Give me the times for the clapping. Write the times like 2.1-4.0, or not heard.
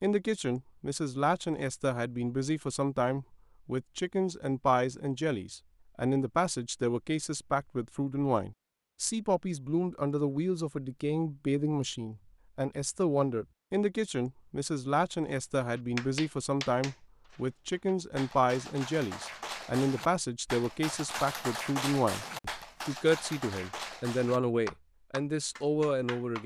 15.6-26.4.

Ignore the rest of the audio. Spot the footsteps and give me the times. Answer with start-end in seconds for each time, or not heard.
not heard.